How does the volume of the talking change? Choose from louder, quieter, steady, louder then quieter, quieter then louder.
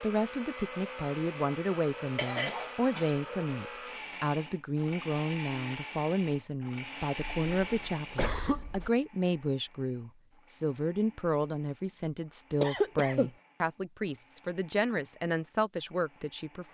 steady.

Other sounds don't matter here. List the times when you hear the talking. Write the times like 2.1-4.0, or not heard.
0.0-16.6.